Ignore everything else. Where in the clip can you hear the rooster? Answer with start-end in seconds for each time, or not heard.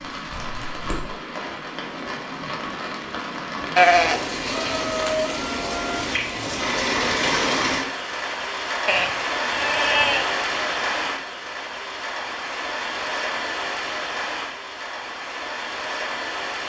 4.7-6.0.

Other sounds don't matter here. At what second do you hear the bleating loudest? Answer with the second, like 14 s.
4 s.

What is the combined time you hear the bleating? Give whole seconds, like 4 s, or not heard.
3 s.